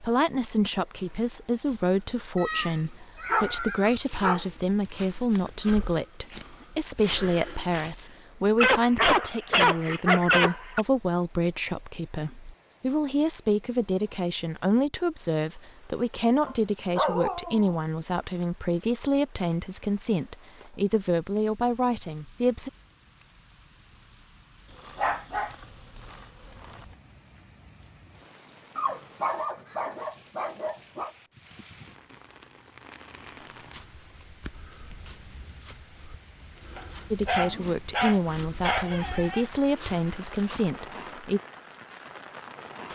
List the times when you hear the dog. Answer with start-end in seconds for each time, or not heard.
2.4-4.5, 8.6-10.8, 16.4-17.8, 24.7-26.9, 28.8-31.1, 36.8-39.5.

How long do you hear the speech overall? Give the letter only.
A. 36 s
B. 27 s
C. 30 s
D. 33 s
B.